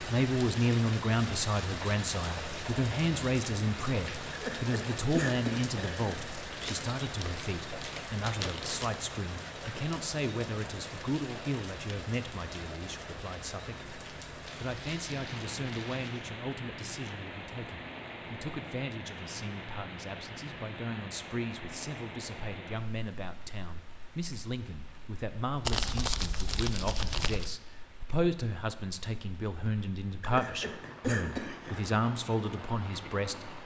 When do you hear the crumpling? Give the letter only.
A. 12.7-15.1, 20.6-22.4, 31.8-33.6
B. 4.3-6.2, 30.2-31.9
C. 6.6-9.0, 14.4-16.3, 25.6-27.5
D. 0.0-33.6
C.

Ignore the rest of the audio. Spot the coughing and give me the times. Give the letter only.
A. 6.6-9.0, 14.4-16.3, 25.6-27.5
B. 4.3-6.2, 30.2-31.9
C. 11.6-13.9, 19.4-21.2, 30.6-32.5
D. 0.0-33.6
B.